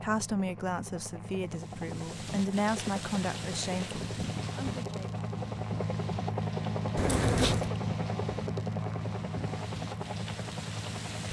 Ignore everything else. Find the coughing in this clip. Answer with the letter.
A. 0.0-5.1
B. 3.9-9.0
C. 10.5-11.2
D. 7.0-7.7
D.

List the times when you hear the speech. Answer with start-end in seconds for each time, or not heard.
0.0-5.1.